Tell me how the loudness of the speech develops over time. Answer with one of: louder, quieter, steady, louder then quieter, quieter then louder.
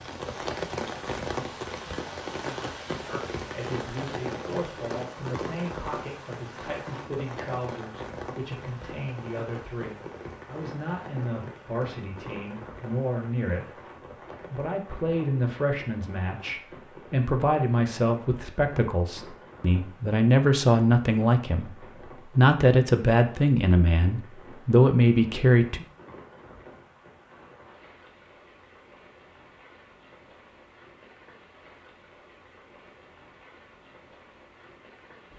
louder.